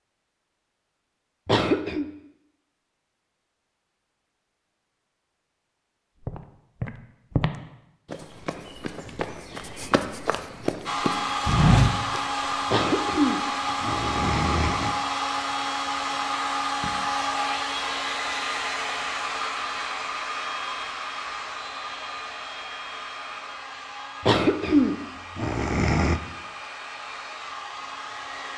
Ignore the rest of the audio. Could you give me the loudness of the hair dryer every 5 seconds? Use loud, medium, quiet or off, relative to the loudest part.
off, off, loud, loud, medium, medium.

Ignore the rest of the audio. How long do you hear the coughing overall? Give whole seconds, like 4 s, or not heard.
5 s.